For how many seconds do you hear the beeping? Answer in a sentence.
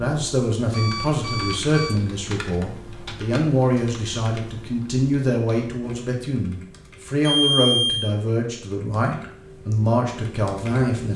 The beeping can be heard for 2 seconds in total.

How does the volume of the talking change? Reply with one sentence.
The volume of the talking stays about the same.